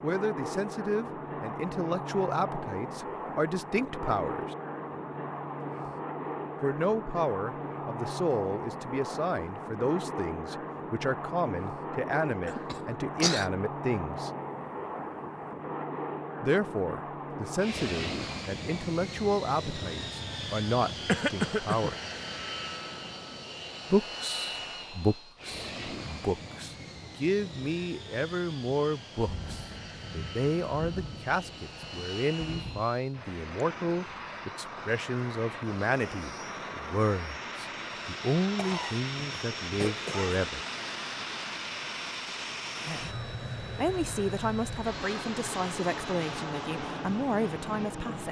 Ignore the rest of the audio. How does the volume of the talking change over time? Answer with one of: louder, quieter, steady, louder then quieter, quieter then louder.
steady.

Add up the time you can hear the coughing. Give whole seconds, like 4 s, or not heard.
4 s.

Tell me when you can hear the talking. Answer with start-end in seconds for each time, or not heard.
0.0-4.5, 6.6-14.3, 16.4-21.9, 23.9-40.6, 42.9-48.2.